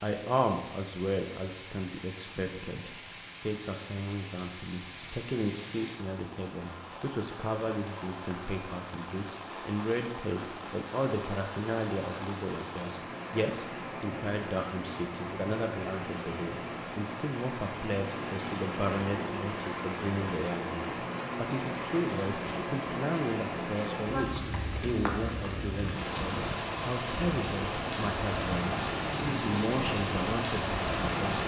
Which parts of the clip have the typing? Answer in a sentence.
You can't hear the typing here.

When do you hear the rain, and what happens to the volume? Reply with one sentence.
You can hear the rain from 0.0 to 31.4 s, getting louder.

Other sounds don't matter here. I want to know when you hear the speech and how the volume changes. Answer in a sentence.
The speech can be heard from 0.0 to 31.4 s, at a steady volume.